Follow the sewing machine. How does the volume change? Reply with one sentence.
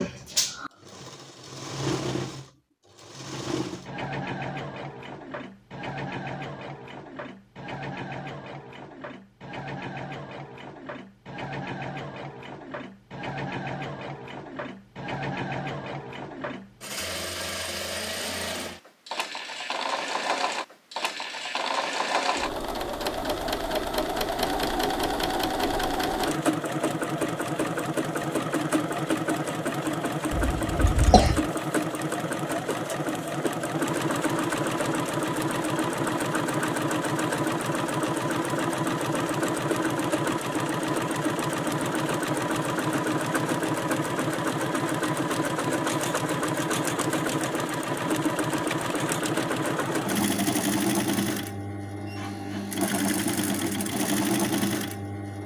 The loudness of the sewing machine goes up.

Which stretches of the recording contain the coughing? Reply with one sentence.
The coughing can be heard from 30.4 to 31.4 s.